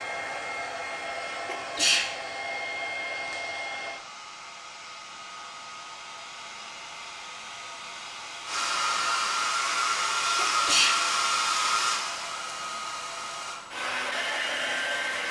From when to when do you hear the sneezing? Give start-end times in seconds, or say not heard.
1.4-2.1, 10.3-11.0.